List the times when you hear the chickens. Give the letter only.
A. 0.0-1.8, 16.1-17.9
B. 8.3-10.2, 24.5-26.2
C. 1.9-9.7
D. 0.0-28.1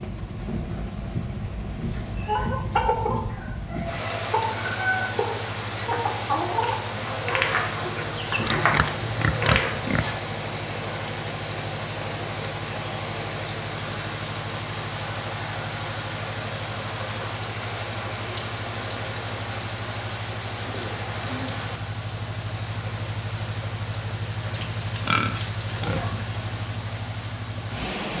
C.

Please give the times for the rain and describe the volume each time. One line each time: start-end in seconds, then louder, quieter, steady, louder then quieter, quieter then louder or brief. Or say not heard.
0.0-28.1 steady.